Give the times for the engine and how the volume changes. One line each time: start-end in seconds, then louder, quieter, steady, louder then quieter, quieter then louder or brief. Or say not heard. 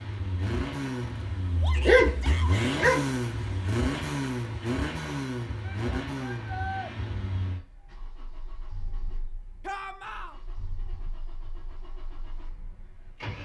0.0-13.4 quieter.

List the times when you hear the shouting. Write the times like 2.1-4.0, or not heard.
1.6-2.8, 5.6-6.9, 9.7-10.3.